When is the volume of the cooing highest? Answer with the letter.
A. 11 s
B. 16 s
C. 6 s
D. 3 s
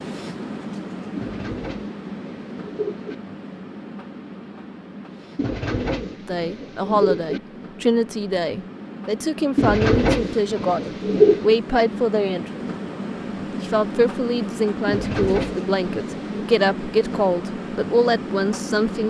A.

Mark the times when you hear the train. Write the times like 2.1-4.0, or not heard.
0.0-19.0.